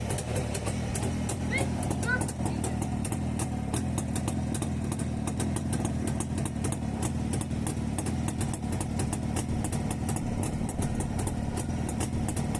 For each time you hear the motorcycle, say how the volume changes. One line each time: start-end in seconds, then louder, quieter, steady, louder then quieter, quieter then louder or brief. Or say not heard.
0.0-12.5 steady.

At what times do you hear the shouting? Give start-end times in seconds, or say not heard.
1.4-2.8.